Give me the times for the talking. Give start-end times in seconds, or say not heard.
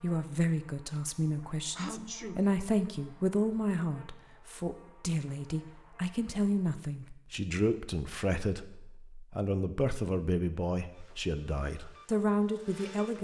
0.0-13.1.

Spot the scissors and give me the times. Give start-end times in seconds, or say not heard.
not heard.